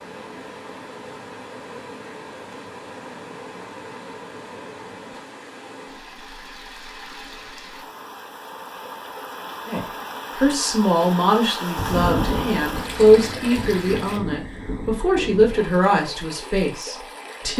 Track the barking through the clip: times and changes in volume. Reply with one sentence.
You can't hear the barking here.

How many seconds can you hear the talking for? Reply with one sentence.
You can hear the talking for 8 seconds altogether.